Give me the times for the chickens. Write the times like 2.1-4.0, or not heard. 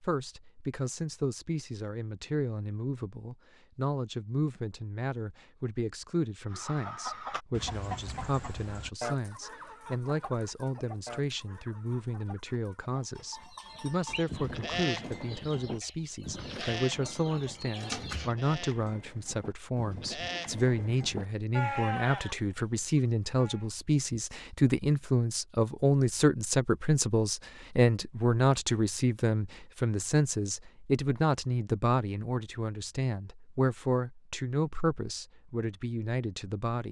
6.5-18.4.